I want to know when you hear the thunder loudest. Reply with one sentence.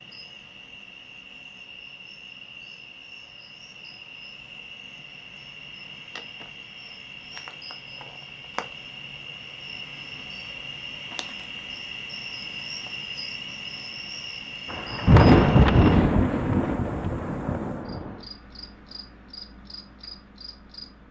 The loudest moment of the thunder is at 15 seconds.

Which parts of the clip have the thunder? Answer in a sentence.
You can hear the thunder from 14.7 to 18.1 s.